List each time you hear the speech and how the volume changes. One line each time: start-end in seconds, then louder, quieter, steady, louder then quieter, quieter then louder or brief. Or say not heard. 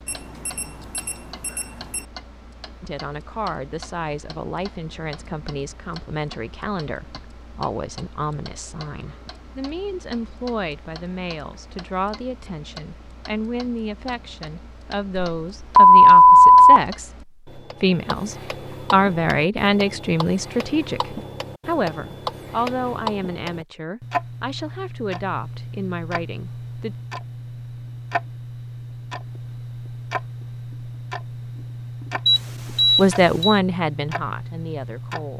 2.8-26.9 louder then quieter
32.9-35.3 brief.